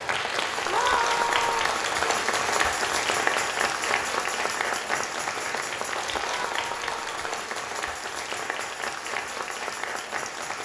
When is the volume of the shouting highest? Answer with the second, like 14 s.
1 s.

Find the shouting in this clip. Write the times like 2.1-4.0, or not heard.
0.7-1.7, 6.2-7.2.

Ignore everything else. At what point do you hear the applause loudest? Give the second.
3 s.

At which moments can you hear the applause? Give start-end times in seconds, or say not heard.
0.0-10.6.